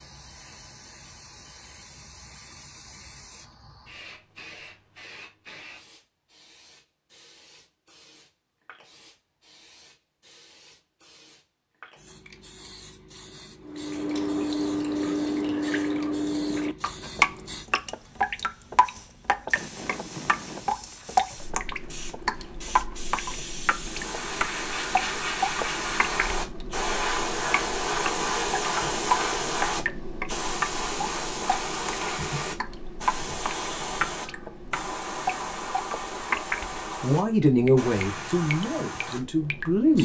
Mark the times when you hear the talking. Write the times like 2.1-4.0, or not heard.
37.0-40.0.